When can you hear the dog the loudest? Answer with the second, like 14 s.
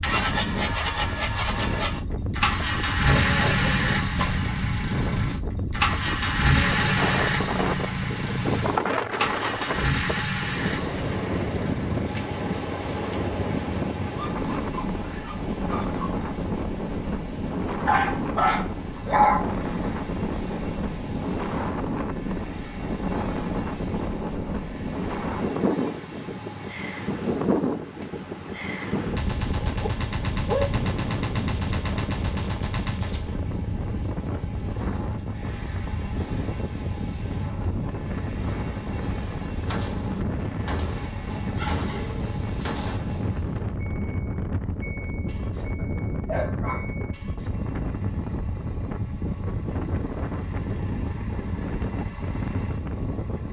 19 s.